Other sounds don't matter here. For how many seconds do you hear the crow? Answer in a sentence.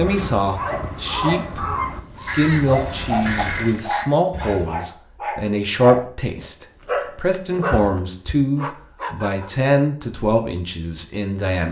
You can hear the crow for 5 seconds altogether.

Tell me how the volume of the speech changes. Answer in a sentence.
The volume of the speech stays about the same.